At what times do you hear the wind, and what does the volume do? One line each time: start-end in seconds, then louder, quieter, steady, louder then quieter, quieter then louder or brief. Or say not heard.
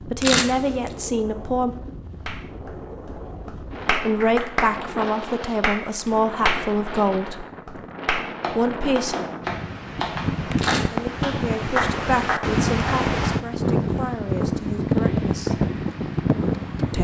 0.0-17.0 louder.